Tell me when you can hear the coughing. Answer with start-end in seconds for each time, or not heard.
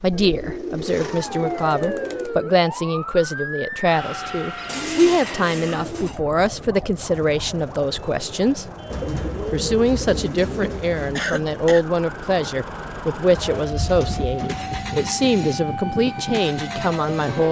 11.2-11.8.